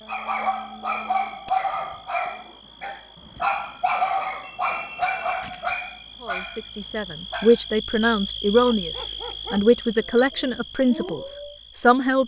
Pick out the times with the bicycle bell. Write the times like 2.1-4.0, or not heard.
1.4-2.1, 4.4-5.5, 8.9-10.2.